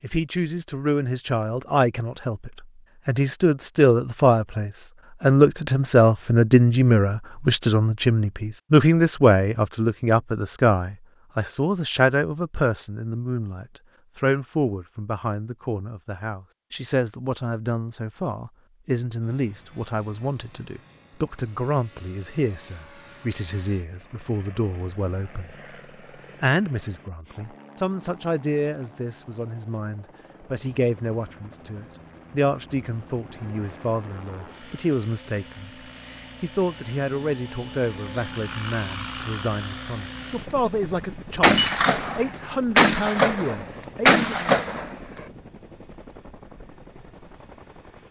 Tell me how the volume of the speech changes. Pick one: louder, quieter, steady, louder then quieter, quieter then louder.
quieter.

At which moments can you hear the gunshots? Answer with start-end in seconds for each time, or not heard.
41.4-45.0.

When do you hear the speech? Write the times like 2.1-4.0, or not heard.
0.0-25.6, 26.4-44.5.